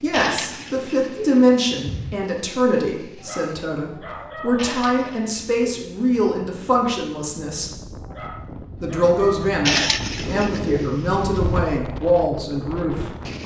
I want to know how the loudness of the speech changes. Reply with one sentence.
The volume of the speech stays about the same.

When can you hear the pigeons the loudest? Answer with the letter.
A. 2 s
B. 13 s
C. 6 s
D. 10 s
D.